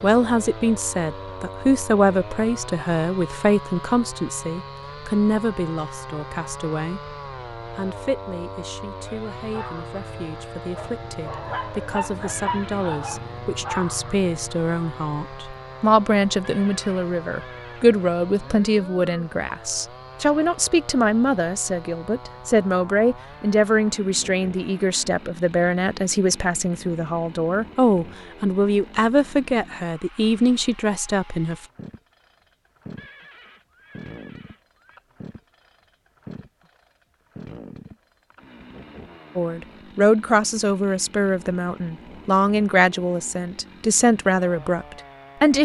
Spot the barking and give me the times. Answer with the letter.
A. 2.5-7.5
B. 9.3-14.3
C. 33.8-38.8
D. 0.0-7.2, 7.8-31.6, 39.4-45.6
B.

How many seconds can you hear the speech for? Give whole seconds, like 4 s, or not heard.
37 s.